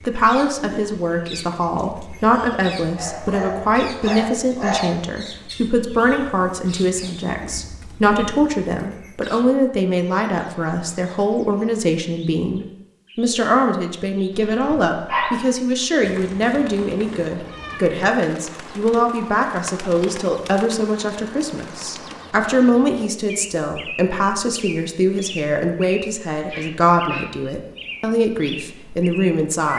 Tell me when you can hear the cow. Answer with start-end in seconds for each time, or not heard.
not heard.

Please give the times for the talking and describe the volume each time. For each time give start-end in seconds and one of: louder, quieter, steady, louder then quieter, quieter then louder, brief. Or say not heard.
0.1-29.7 steady.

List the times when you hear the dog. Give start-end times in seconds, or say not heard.
2.9-5.0, 14.3-15.4, 26.4-27.5.